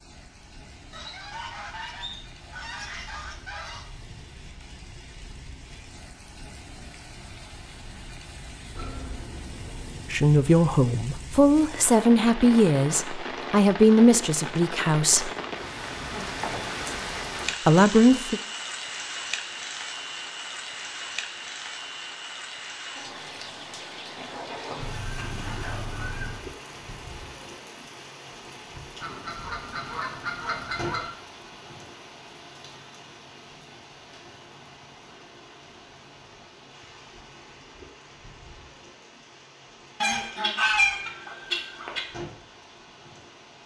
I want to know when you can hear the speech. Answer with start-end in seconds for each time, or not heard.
10.1-15.3, 17.6-18.4.